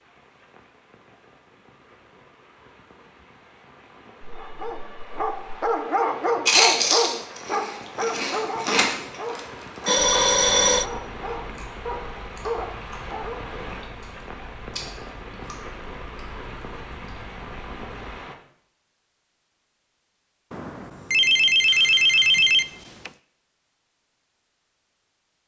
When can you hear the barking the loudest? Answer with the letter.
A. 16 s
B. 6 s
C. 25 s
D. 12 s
B.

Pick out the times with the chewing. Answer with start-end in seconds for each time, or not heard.
6.5-18.1.